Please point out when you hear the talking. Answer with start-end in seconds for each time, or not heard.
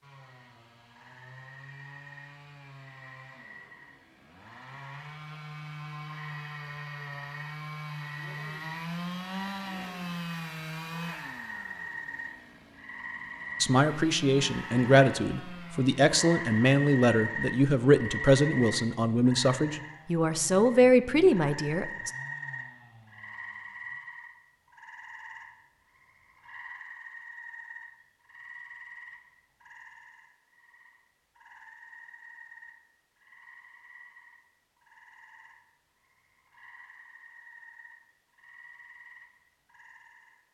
13.6-22.1.